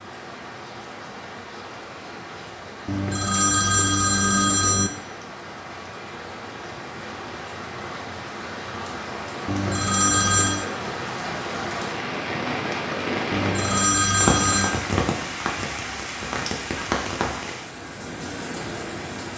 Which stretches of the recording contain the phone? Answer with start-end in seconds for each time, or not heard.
2.9-4.9, 9.4-10.7, 13.3-14.8.